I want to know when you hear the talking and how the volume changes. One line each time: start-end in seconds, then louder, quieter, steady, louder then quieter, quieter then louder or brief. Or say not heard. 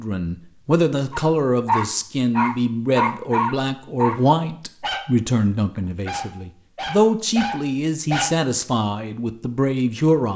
0.0-10.3 steady.